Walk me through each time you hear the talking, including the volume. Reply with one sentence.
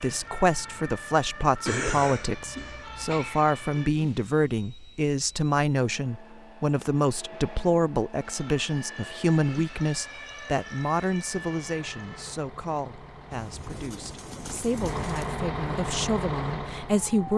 You can hear the talking from 0.0 to 17.3 s, getting quieter.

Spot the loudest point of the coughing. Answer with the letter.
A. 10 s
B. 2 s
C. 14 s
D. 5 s
B.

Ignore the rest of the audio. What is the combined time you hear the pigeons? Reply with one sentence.
You can hear the pigeons for 2 seconds altogether.